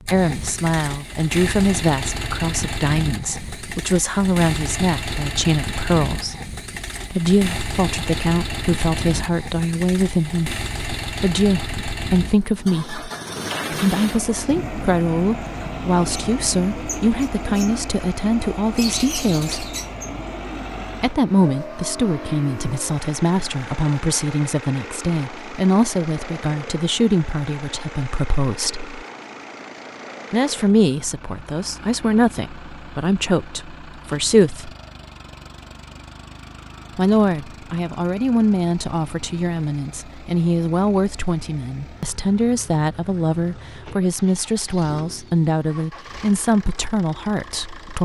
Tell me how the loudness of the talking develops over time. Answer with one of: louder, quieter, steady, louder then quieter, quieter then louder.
steady.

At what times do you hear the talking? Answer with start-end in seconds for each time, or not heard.
0.1-6.3, 7.1-13.1, 13.7-19.7, 21.0-29.0, 30.3-34.7, 37.0-48.0.